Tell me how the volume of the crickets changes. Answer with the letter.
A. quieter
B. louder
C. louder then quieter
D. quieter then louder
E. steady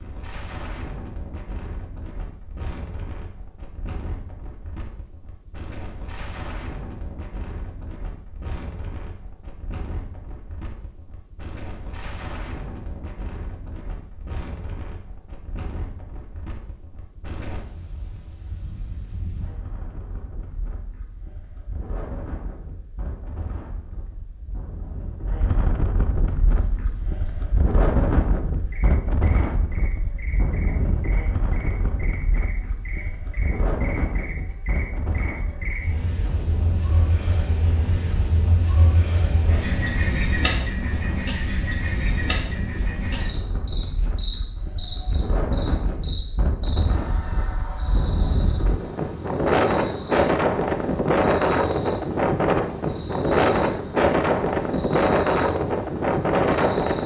C.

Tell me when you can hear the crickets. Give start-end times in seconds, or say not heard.
26.1-57.0.